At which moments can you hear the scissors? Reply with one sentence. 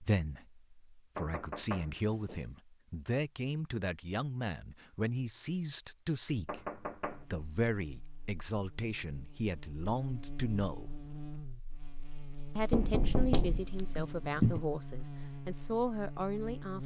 The scissors can be heard from 13.3 to 14.7 s.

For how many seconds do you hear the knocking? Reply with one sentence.
The knocking can be heard for 3 seconds in total.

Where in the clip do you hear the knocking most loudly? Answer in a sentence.
The loudest moment of the knocking is at 13 seconds.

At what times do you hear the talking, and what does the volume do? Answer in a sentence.
You can hear the talking from 0.0 to 10.9 s, at a steady volume; and from 12.6 to 16.8 s, getting quieter then louder.